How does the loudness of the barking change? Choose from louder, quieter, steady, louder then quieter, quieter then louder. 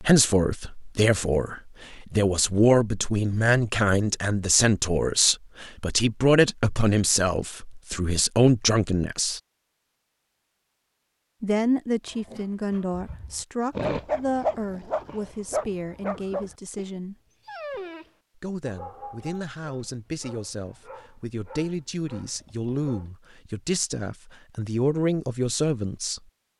quieter.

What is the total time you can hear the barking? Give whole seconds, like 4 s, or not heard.
11 s.